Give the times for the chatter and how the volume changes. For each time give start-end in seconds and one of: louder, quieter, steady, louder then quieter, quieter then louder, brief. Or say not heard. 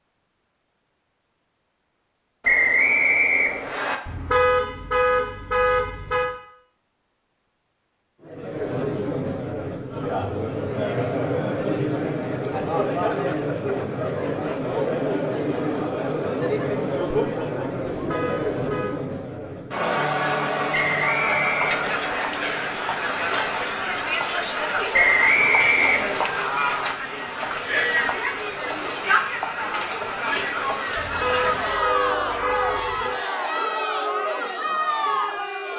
8.2-35.7 steady.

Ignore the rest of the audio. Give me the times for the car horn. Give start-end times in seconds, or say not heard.
4.0-6.3, 17.9-18.9, 30.9-33.2.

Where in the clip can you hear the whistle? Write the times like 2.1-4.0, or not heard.
2.4-4.0, 20.8-22.2, 24.9-26.4.